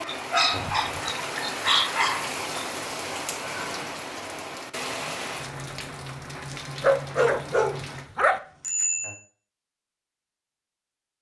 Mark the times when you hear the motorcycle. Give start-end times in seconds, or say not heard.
not heard.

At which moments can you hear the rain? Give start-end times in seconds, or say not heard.
0.0-8.1.